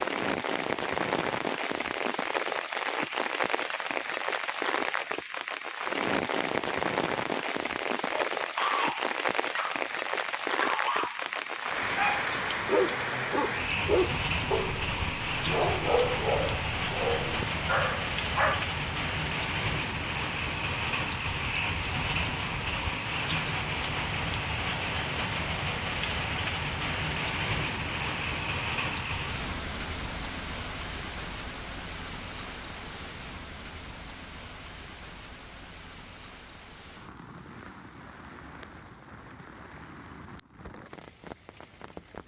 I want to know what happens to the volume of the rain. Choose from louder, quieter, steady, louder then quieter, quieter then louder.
quieter.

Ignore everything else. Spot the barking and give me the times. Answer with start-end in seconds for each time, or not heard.
8.1-18.6.